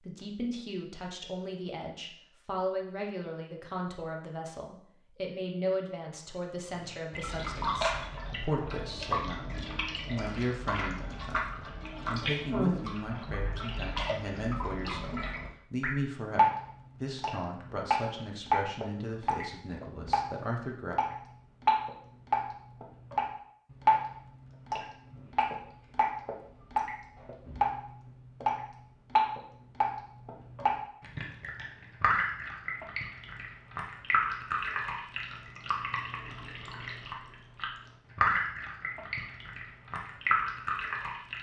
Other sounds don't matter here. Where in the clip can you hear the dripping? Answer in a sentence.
You can hear the dripping from 6.7 to 41.3 s.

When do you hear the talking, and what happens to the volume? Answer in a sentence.
You can hear the talking from 0.0 to 20.9 s, at a steady volume.